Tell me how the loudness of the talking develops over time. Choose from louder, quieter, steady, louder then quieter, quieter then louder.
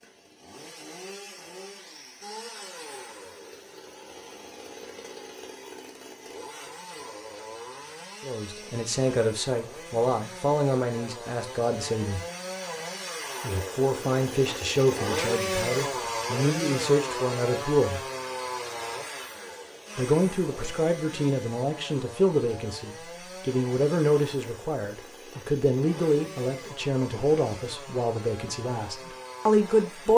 steady.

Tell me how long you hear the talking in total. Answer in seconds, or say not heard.
19 s.